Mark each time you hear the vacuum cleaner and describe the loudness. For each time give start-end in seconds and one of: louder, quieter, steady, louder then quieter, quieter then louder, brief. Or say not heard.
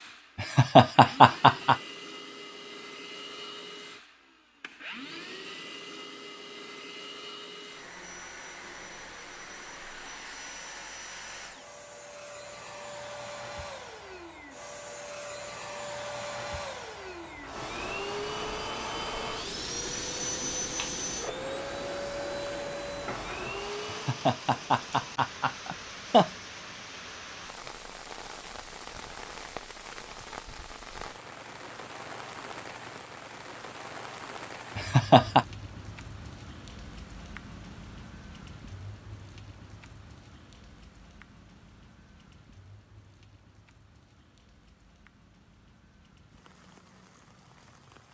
0.0-24.2 louder.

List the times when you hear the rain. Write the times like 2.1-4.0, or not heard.
17.2-48.0.